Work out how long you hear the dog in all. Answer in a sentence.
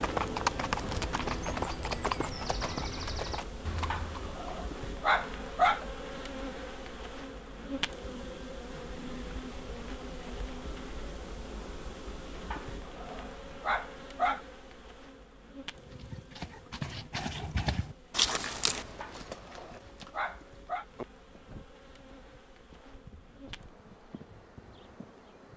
You can hear the dog for 6 seconds altogether.